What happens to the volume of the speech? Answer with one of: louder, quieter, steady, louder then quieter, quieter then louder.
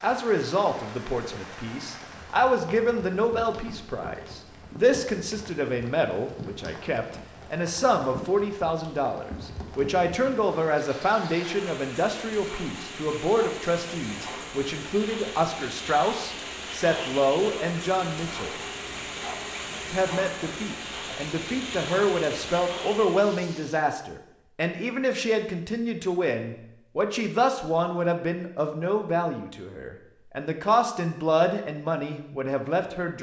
steady.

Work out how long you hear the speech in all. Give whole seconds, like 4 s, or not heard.
32 s.